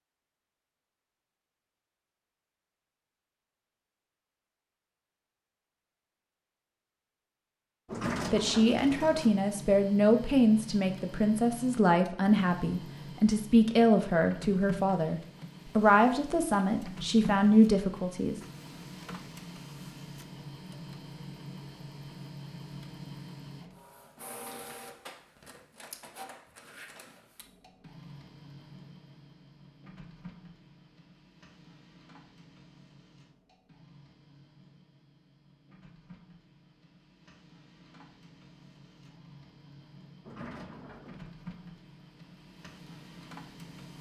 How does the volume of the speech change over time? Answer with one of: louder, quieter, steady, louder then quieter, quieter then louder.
steady.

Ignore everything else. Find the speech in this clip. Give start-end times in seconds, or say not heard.
8.3-18.4.